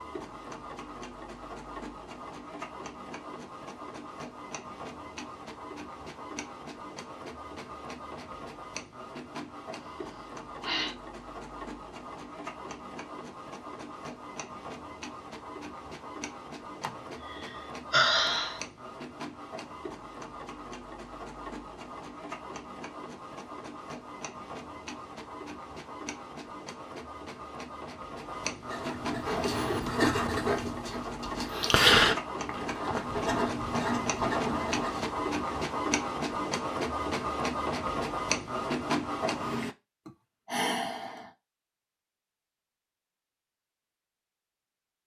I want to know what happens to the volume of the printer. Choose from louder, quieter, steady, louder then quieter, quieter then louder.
louder.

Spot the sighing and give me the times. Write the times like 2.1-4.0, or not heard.
9.8-10.9, 16.8-18.6, 40.0-41.3.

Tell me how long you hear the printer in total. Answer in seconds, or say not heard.
40 s.